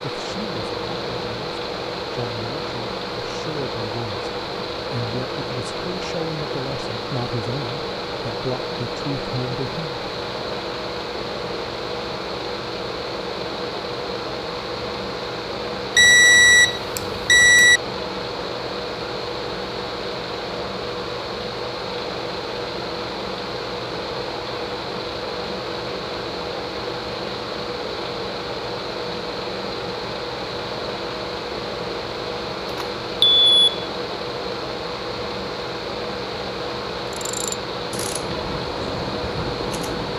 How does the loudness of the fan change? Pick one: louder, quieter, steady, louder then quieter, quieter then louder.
steady.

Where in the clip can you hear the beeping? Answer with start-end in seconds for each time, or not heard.
15.9-17.8, 32.8-33.6.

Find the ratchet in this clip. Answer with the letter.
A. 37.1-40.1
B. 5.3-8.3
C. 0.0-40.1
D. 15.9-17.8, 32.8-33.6
A.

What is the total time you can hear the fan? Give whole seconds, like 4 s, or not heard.
40 s.